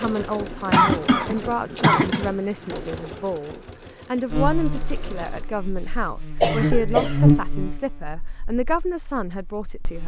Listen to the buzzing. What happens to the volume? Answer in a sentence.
The volume of the buzzing goes up, then down.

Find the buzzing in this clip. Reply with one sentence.
You can hear the buzzing from 4.3 to 10.0 s.